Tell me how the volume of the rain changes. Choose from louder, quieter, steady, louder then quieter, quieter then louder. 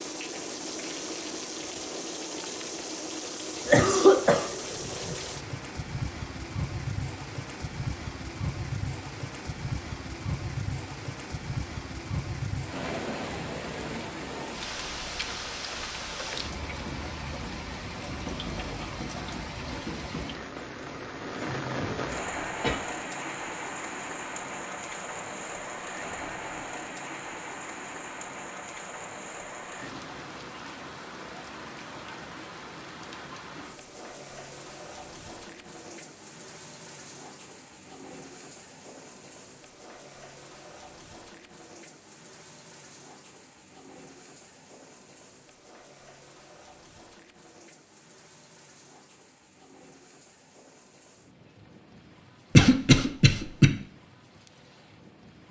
quieter.